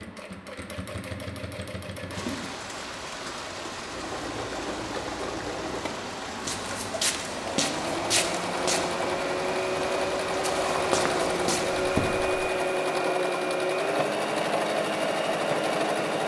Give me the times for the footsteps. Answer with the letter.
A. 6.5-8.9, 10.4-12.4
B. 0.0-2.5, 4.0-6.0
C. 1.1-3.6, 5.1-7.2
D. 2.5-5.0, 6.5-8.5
A.